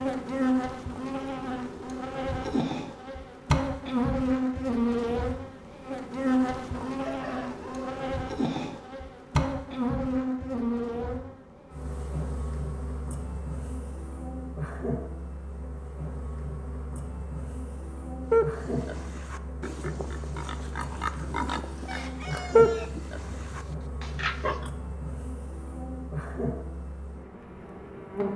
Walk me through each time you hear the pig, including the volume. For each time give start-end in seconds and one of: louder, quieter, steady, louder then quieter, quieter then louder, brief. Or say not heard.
18.3-24.7 louder then quieter.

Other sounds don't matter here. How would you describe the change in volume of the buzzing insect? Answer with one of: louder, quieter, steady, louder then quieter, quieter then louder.
quieter.